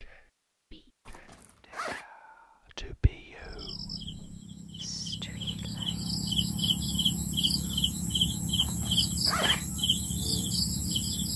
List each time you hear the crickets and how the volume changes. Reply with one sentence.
The crickets can be heard from 3.4 to 11.3 s, getting louder.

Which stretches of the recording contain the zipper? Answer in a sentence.
The zipper can be heard from 1.1 to 2.0 s and from 8.6 to 9.7 s.